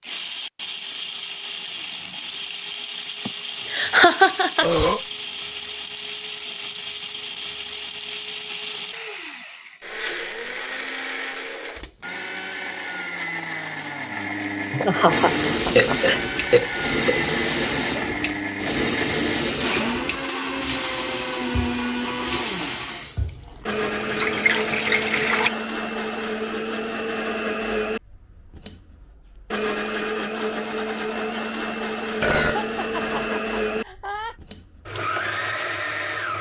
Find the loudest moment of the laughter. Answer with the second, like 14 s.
4 s.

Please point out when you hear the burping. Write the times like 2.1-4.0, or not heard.
4.6-5.0, 15.8-17.2, 32.2-33.3.